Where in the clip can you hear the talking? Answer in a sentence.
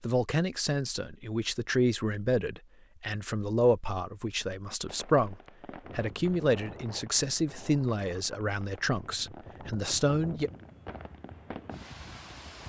The talking can be heard from 0.0 to 5.3 s and from 6.0 to 10.5 s.